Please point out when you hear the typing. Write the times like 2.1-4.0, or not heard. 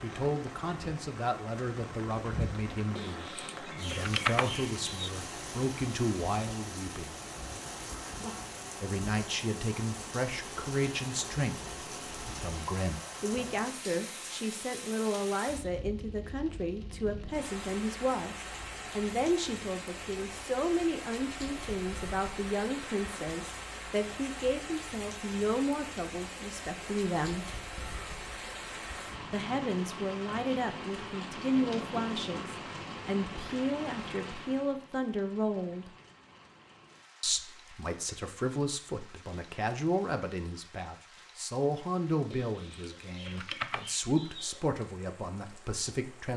3.0-5.1, 42.3-44.6.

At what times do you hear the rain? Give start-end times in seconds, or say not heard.
0.0-46.3.